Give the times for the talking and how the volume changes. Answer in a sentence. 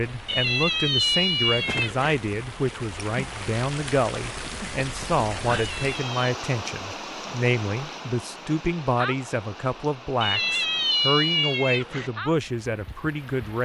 You can hear the talking from 0.0 to 13.6 s, at a steady volume.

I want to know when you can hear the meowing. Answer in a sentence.
The meowing can be heard from 0.2 to 2.1 s, from 5.5 to 6.3 s and from 10.2 to 12.1 s.